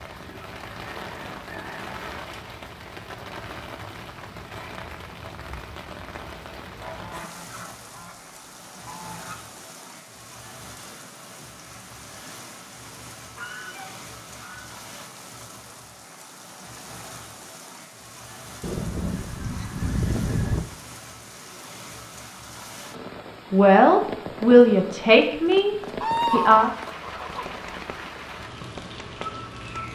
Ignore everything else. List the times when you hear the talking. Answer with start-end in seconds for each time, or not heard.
23.5-26.7.